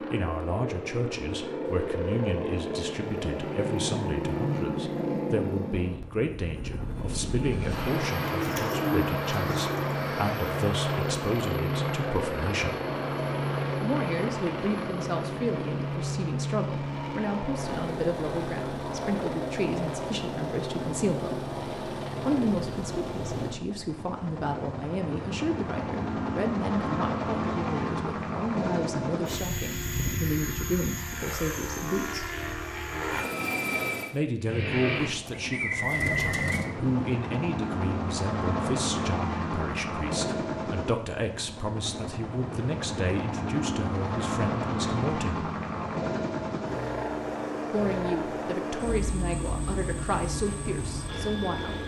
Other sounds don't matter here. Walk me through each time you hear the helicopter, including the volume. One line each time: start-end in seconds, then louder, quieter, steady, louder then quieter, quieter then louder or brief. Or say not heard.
0.0-51.8 steady.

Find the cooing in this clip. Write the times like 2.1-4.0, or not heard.
8.2-9.9, 35.0-36.7.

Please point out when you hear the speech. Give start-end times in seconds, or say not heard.
0.0-12.8, 13.8-21.4, 22.2-32.2, 34.1-45.5, 47.7-51.8.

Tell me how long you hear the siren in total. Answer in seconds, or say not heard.
not heard.